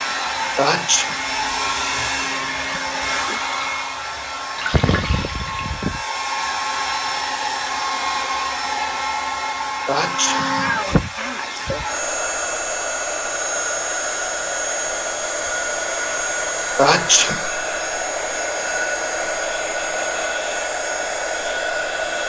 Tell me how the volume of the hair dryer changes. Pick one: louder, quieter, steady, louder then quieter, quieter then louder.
steady.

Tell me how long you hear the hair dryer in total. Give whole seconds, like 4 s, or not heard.
22 s.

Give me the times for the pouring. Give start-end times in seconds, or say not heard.
4.5-5.7.